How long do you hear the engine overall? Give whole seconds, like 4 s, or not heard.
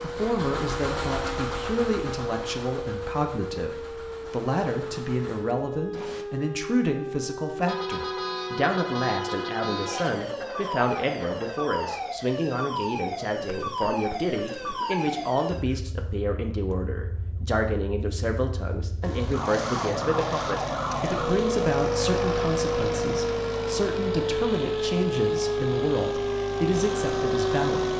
15 s.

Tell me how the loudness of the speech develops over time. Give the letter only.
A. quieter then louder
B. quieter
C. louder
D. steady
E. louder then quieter
D.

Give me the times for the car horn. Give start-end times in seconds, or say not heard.
7.7-10.2.